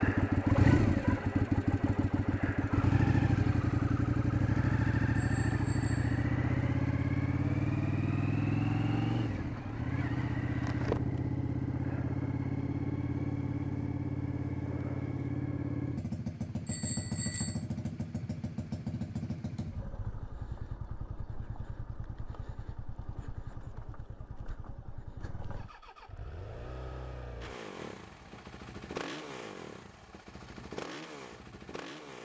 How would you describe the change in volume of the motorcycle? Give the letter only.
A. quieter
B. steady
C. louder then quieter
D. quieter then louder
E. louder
A.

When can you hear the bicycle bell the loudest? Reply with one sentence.
The loudest moment of the bicycle bell is at 17 seconds.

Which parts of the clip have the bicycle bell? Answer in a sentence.
The bicycle bell can be heard from 5.2 to 6.2 s and from 16.6 to 17.6 s.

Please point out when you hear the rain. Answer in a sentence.
You can't hear the rain here.